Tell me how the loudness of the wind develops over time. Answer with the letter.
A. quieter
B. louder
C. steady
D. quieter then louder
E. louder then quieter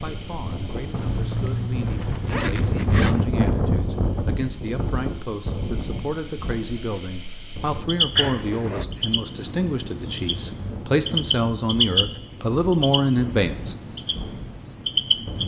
A.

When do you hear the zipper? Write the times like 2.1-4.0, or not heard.
0.9-3.1, 8.2-8.8.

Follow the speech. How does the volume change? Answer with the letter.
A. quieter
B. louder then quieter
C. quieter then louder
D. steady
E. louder
E.